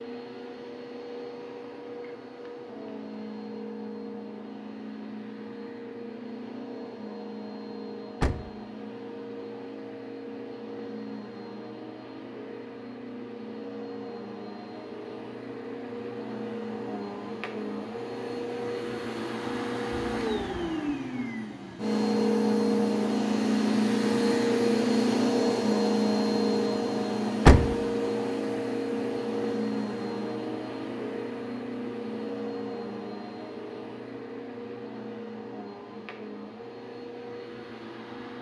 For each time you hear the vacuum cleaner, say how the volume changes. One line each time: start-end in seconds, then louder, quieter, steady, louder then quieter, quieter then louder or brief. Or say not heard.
0.0-38.3 louder then quieter.